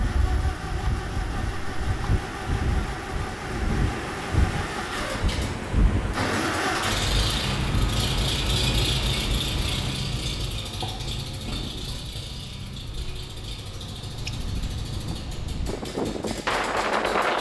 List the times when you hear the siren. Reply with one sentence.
You can't hear the siren here.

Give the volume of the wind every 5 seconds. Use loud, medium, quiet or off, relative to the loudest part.
medium, medium, quiet, loud.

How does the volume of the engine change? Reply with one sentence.
The loudness of the engine goes up, then down.